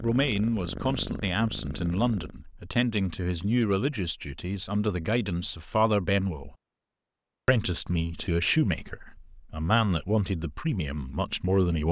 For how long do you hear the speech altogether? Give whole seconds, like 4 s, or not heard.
11 s.